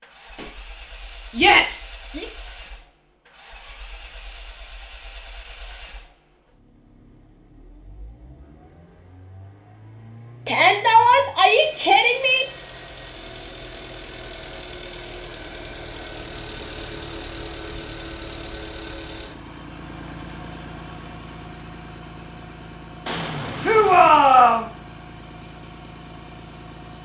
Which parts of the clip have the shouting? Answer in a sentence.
You can hear the shouting from 1.4 to 2.2 s, from 10.4 to 12.4 s and from 23.6 to 24.7 s.